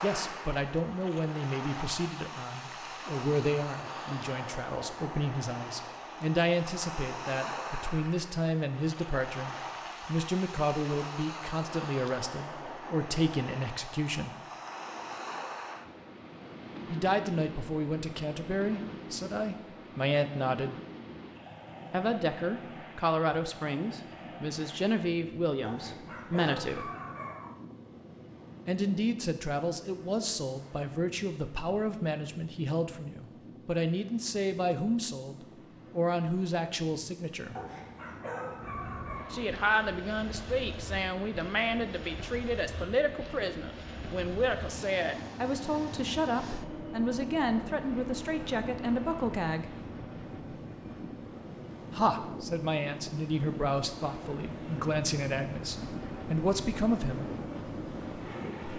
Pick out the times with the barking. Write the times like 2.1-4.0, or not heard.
25.6-27.6, 37.5-39.5.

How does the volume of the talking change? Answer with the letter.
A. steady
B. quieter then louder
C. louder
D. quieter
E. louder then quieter
A.